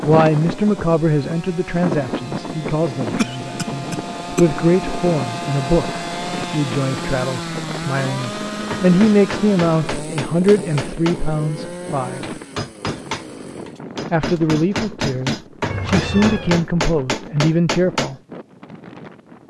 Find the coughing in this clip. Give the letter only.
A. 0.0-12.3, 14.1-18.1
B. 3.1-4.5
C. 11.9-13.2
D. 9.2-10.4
B.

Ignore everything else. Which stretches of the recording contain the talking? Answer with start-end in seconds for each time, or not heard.
0.0-12.3, 14.1-18.1.